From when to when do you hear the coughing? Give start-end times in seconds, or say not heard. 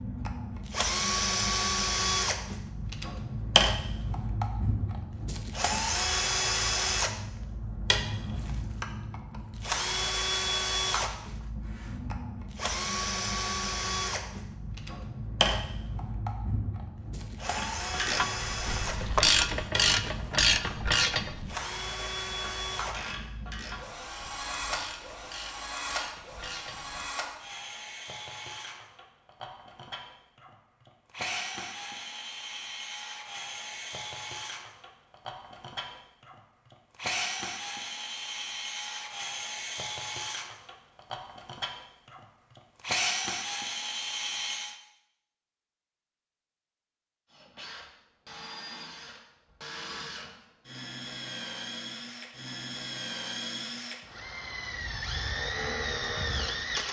not heard.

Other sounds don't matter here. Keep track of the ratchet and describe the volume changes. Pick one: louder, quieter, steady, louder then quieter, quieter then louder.
quieter.